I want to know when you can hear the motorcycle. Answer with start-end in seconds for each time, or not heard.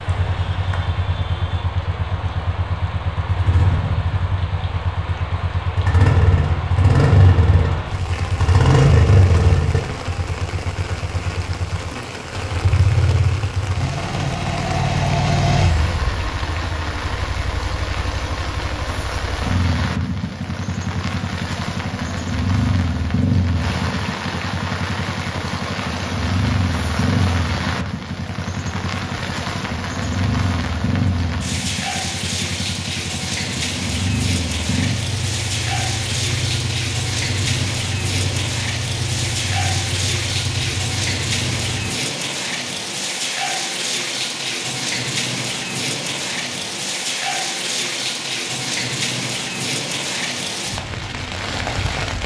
0.0-41.9.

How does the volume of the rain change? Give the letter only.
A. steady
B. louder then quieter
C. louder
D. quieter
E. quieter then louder
C.